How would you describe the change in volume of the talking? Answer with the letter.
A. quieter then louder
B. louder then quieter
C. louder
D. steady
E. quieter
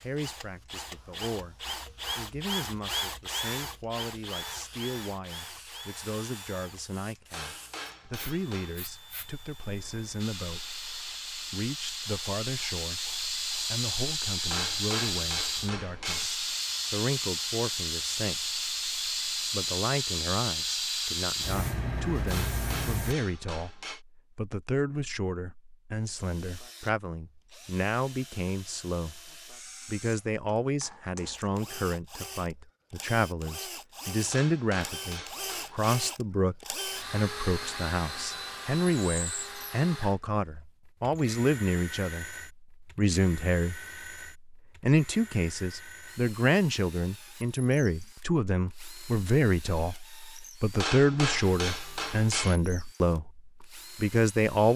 C.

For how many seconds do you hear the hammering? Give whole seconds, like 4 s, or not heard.
9 s.